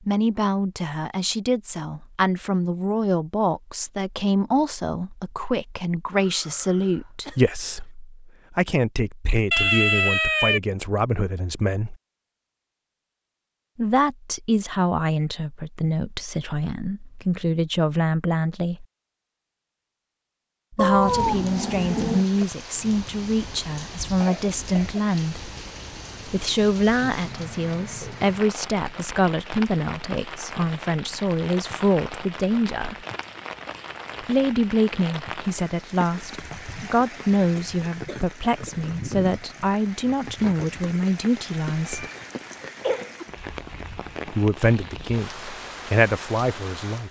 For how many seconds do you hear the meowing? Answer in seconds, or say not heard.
4 s.